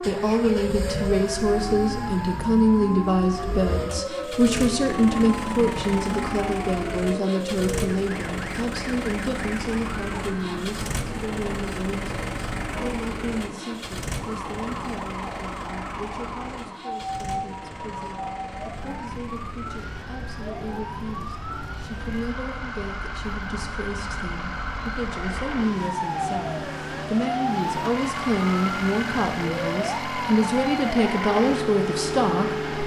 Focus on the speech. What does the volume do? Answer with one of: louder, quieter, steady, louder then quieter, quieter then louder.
quieter then louder.